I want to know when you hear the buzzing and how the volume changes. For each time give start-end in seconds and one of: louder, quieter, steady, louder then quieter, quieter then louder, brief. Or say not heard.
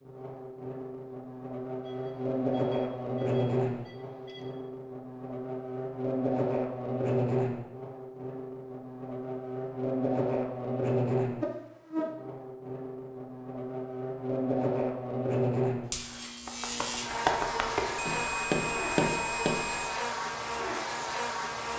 0.0-21.7 steady.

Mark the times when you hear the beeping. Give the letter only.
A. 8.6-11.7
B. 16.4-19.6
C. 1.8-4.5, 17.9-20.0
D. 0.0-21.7
C.